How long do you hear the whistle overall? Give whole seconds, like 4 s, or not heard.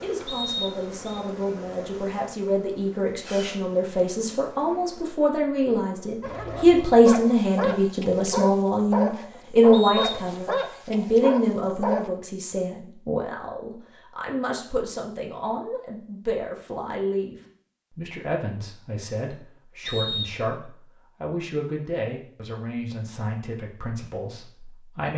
3 s.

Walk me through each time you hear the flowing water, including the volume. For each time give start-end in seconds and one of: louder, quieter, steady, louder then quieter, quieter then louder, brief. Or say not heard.
not heard.